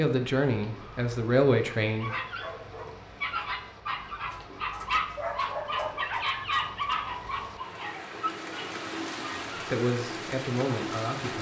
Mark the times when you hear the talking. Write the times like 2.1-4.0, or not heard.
0.0-2.1, 9.7-11.3.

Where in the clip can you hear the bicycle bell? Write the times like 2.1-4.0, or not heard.
not heard.